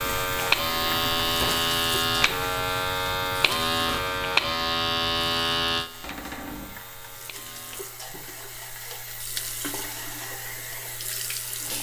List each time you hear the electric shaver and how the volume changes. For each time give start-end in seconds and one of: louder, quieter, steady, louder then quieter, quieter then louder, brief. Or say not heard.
0.0-8.1 quieter.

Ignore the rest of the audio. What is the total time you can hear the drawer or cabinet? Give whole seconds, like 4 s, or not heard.
2 s.